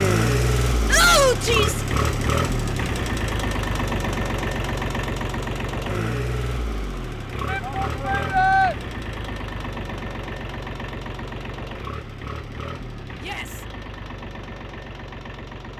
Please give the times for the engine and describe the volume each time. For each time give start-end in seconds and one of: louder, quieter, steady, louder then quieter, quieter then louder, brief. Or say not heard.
0.0-15.7 quieter.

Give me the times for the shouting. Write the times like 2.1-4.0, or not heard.
0.8-1.8, 7.5-8.8, 13.2-13.7.